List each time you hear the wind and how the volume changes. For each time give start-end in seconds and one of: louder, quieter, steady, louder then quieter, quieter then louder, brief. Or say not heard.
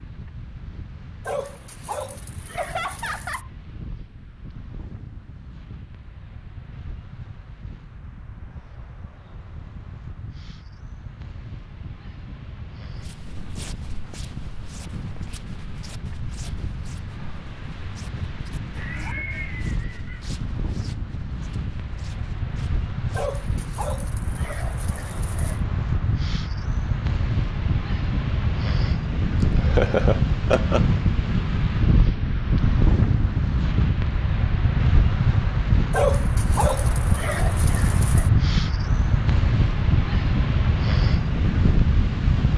0.0-42.5 louder.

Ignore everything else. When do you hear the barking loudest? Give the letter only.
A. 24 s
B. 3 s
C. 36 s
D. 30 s
C.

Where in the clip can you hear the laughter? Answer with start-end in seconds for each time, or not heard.
2.5-3.5, 18.8-20.2, 29.6-30.9.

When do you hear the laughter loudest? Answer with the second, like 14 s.
30 s.